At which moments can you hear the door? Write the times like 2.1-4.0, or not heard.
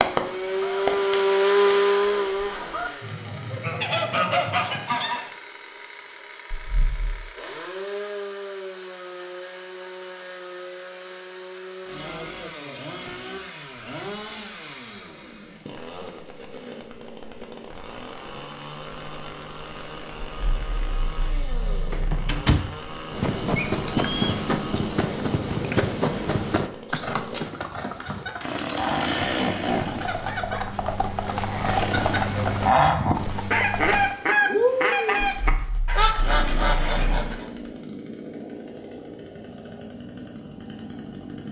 21.9-22.8.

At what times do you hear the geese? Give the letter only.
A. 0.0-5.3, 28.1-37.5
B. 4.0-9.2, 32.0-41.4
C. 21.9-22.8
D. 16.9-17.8
A.